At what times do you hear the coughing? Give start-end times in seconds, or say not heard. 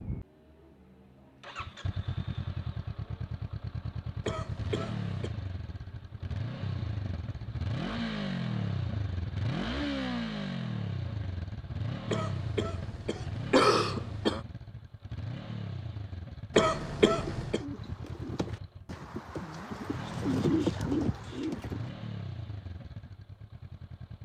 4.2-5.3, 12.1-14.4, 16.6-17.6.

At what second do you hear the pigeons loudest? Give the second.
21 s.